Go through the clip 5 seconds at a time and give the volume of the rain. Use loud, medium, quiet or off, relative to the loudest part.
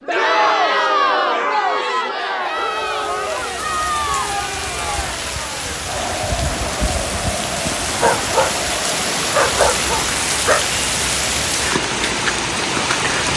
medium, loud, loud.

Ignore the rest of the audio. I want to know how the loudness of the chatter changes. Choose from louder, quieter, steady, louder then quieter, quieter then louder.
quieter.